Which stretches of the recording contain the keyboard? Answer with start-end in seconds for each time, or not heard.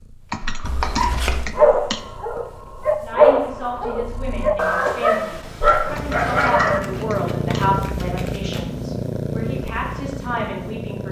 0.3-2.0, 6.0-7.7.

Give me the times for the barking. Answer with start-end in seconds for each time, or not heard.
0.8-6.8.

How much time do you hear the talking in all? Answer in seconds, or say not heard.
8 s.